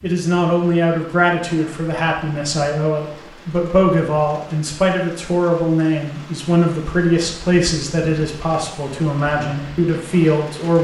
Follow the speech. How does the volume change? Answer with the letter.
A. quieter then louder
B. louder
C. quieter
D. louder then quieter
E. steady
E.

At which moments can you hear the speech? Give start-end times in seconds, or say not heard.
0.0-10.7.